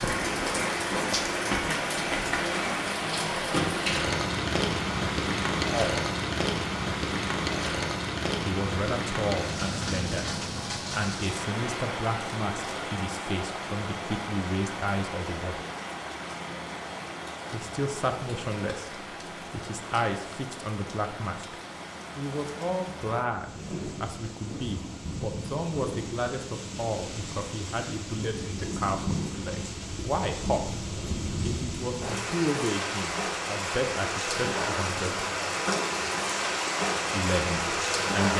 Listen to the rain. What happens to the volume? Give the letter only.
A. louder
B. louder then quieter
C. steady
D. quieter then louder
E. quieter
D.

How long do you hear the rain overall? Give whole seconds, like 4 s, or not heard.
38 s.